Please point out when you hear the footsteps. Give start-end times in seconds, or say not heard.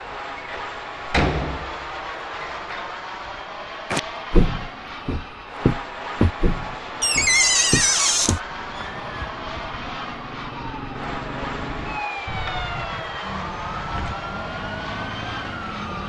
3.9-9.3.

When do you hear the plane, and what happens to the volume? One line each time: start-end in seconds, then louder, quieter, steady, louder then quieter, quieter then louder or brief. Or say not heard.
0.0-16.0 steady.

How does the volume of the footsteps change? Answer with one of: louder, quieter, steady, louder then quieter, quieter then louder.
quieter.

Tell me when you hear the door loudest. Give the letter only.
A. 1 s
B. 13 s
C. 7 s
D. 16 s
C.